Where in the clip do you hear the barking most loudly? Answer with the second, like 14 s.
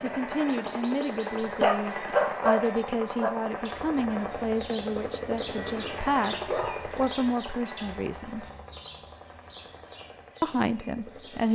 2 s.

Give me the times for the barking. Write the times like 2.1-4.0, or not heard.
1.4-3.4, 6.5-7.1.